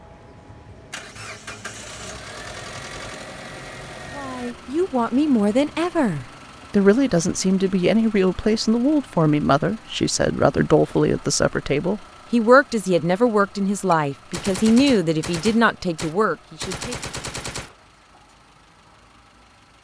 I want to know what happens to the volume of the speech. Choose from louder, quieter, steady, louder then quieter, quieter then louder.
steady.